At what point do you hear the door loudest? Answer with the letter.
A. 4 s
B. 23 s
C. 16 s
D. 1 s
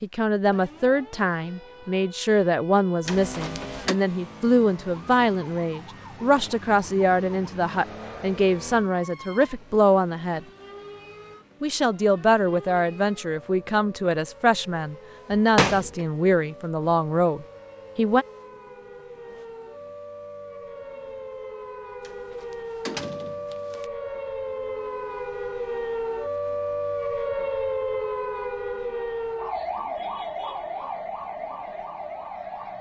C.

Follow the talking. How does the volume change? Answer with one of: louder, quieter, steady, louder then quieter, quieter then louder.
steady.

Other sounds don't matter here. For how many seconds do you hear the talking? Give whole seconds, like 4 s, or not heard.
17 s.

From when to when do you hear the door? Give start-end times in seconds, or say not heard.
3.0-4.0, 15.3-16.1, 22.0-23.9.